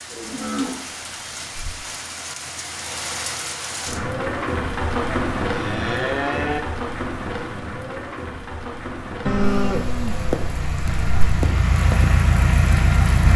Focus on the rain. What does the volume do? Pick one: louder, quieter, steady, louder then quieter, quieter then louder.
louder then quieter.